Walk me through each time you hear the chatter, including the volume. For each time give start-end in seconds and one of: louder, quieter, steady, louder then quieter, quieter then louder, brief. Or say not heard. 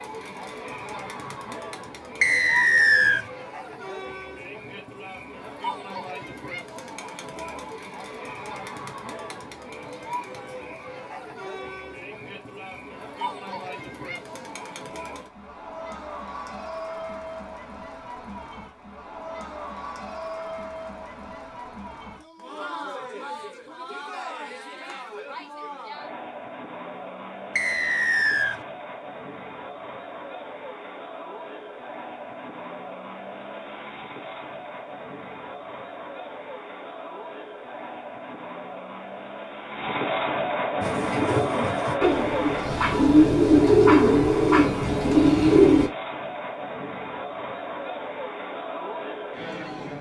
0.0-49.9 louder.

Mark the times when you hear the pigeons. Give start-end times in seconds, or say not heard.
40.8-45.9.